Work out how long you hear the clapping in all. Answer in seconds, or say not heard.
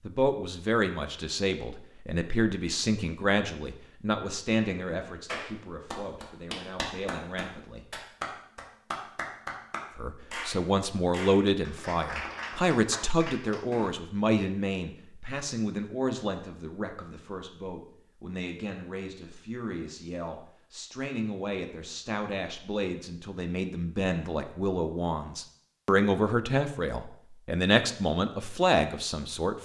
9 s.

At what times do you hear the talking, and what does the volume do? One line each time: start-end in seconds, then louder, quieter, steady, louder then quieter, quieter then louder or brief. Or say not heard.
0.0-7.8 quieter
9.9-29.6 quieter then louder.